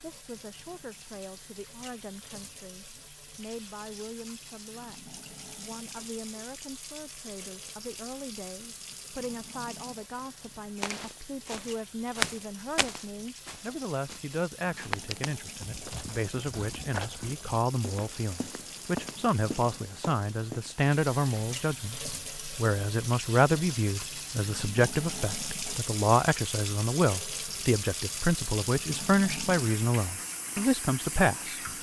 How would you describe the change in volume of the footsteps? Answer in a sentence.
The loudness of the footsteps goes down, then up.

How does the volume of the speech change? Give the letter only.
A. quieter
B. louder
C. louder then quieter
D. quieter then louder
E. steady
B.